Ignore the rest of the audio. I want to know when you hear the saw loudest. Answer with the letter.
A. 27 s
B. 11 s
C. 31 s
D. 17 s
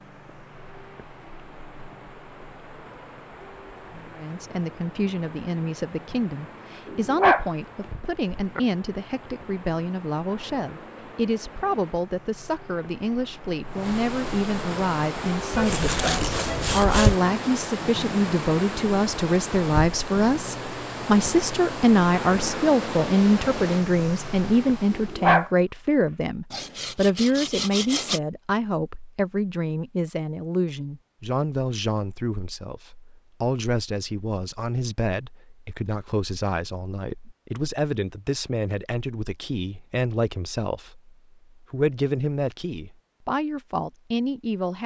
D.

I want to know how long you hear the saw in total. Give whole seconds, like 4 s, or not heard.
3 s.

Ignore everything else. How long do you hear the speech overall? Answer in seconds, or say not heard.
41 s.